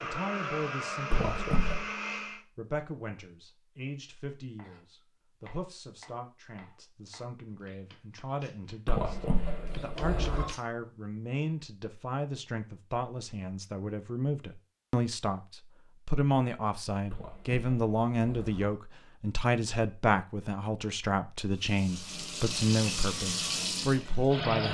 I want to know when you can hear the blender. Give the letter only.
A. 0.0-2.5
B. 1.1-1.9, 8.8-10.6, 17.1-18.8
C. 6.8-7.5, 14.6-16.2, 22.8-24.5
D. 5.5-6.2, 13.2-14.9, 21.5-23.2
A.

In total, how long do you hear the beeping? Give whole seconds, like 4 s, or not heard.
4 s.